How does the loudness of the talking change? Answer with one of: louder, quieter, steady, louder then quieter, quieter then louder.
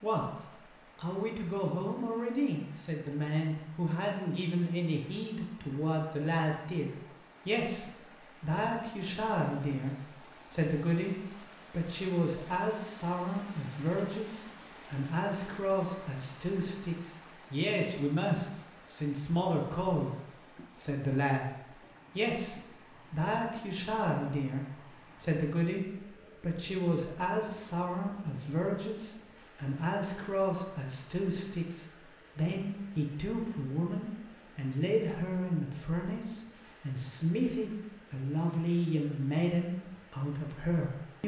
steady.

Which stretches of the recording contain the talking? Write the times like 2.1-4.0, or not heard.
0.0-41.2.